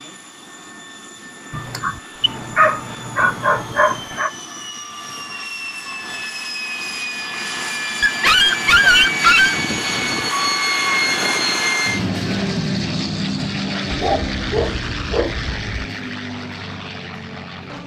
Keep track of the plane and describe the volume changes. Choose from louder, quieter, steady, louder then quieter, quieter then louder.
louder then quieter.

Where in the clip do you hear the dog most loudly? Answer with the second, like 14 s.
9 s.